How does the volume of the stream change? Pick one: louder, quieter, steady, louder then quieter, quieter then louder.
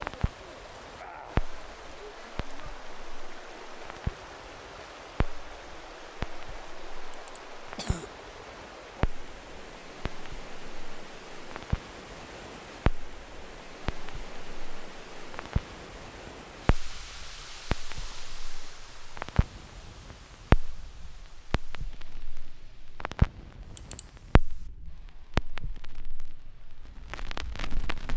quieter.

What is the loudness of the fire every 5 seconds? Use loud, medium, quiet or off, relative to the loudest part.
medium, medium, medium, medium, loud, medium.